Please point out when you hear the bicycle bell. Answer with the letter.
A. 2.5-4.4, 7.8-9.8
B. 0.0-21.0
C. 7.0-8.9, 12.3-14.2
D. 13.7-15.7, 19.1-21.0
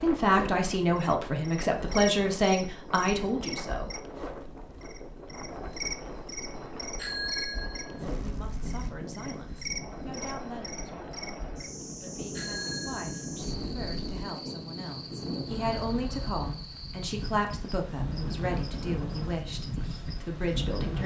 C.